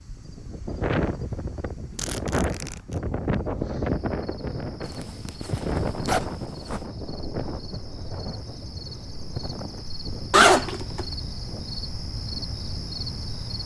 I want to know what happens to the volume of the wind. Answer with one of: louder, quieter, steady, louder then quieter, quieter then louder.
quieter.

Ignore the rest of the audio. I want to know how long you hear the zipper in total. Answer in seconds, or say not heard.
4 s.